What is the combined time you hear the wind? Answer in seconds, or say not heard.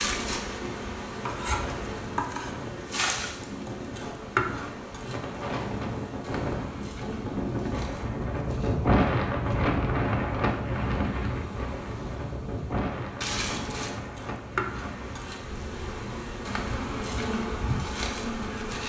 19 s.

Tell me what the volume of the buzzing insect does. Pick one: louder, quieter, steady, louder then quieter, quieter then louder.
quieter then louder.